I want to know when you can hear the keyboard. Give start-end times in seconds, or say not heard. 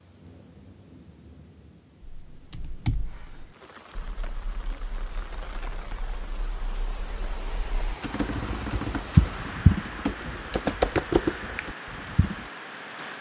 2.0-12.5.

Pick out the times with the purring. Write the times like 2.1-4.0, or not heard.
not heard.